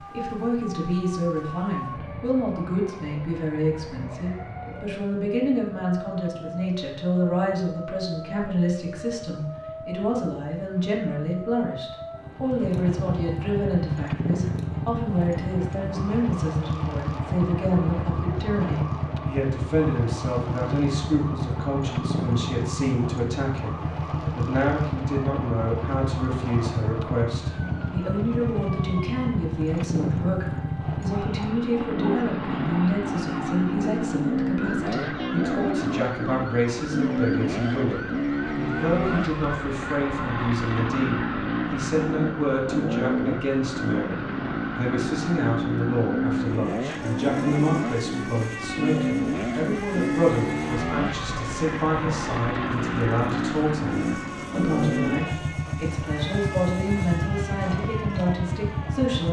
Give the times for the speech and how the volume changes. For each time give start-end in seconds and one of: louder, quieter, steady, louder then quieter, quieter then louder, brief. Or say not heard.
0.1-59.2 steady.